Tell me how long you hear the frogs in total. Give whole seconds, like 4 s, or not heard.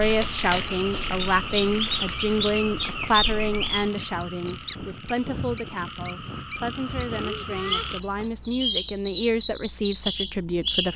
8 s.